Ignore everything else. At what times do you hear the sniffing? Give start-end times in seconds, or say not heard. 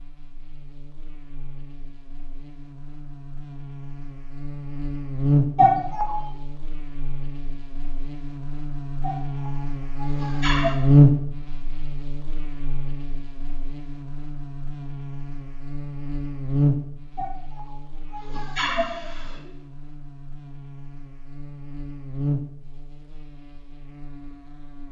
5.5-6.2, 9.0-10.8, 17.1-19.4.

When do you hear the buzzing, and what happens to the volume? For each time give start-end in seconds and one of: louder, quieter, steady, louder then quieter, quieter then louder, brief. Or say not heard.
0.0-24.8 louder then quieter.